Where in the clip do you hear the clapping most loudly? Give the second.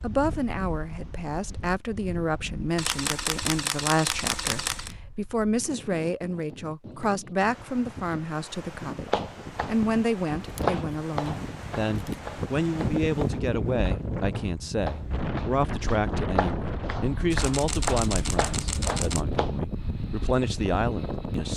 11 s.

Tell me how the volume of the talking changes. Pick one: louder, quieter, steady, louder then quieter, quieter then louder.
steady.